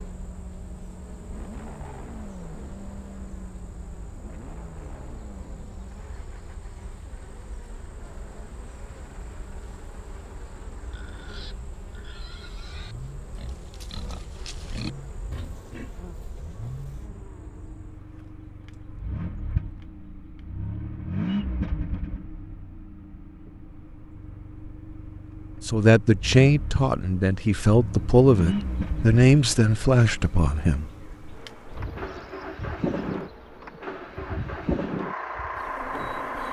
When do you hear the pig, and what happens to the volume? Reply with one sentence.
The pig can be heard from 10.8 to 17.1 s, getting louder then quieter.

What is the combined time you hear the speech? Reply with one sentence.
The speech can be heard for 5 seconds in total.